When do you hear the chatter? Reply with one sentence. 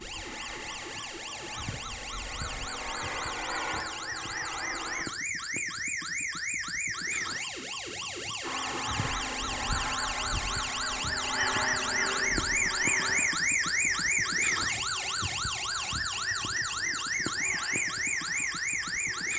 The chatter can't be heard in this clip.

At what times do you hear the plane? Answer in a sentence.
The plane can be heard from 0.0 to 5.0 s and from 8.4 to 19.3 s.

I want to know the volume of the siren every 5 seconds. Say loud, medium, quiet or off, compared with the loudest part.
medium, medium, loud, loud.